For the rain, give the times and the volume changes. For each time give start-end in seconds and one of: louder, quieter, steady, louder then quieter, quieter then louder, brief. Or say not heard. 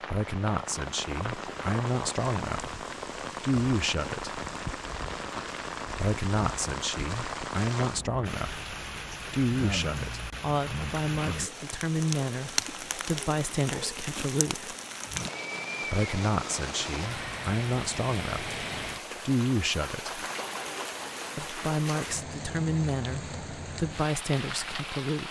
0.0-25.2 steady.